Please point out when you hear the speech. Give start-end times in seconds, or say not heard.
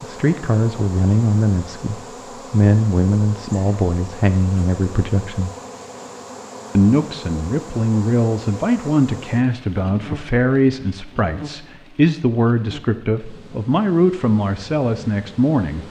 0.0-5.5, 6.8-15.8.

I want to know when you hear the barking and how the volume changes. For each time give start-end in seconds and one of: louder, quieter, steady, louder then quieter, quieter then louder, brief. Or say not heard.
not heard.